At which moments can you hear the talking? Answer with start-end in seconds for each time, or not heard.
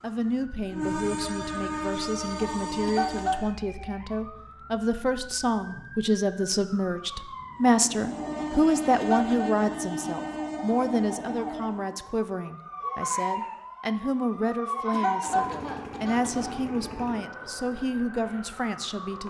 0.0-19.2.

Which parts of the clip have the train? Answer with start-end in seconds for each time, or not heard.
0.0-3.5, 7.7-12.1.